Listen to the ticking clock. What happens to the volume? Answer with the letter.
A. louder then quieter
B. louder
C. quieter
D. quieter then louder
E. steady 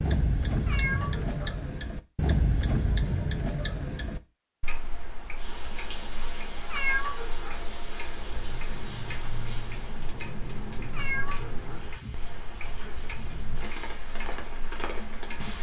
C.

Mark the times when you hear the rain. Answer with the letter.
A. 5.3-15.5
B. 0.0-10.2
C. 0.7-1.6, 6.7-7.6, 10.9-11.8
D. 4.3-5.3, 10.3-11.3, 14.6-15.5
A.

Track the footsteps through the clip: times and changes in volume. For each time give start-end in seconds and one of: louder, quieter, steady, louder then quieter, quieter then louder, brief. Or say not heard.
not heard.